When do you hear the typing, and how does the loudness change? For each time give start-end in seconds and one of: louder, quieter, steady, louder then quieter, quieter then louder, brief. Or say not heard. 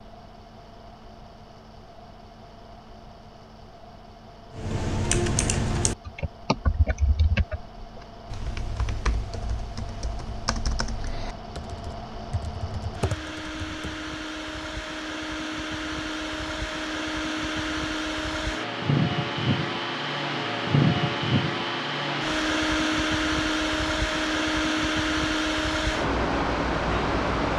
4.5-14.1 quieter.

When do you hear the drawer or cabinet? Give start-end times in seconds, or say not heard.
not heard.